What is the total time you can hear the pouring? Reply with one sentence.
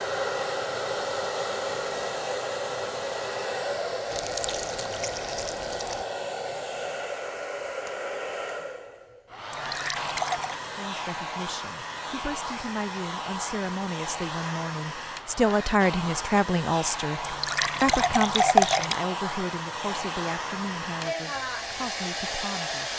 The pouring can be heard for 5 seconds in total.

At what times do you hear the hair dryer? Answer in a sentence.
You can hear the hair dryer from 0.0 to 22.9 s.